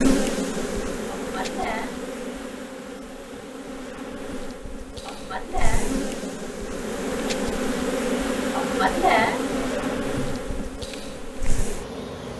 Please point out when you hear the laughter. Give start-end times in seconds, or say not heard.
1.1-1.9, 5.0-6.6, 8.5-10.7.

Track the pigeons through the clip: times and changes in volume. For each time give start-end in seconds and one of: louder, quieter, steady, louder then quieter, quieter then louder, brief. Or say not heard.
not heard.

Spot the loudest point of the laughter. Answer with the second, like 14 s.
9 s.